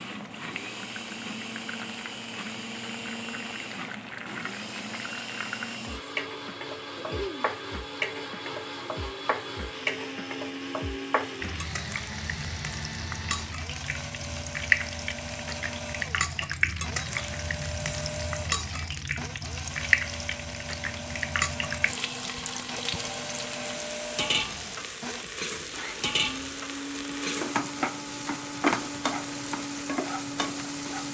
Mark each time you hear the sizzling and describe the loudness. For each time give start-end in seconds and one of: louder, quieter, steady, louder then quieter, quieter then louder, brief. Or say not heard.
0.0-31.0 louder.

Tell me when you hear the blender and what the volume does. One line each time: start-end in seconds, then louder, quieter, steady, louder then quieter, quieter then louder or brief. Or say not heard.
0.0-31.0 steady.